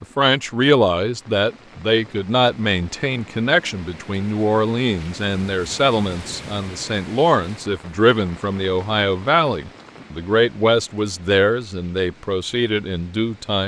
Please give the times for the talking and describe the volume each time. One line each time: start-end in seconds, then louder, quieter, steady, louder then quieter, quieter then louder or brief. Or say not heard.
0.0-13.6 steady.